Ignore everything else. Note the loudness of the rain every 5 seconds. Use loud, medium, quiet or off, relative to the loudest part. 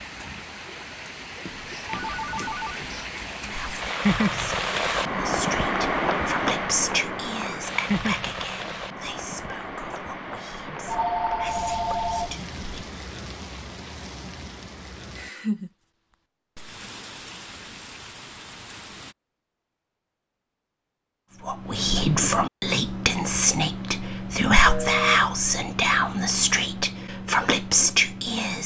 loud, loud, medium, medium, off, off.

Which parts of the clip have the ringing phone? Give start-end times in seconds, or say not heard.
1.4-3.0, 10.8-12.3, 24.6-25.2.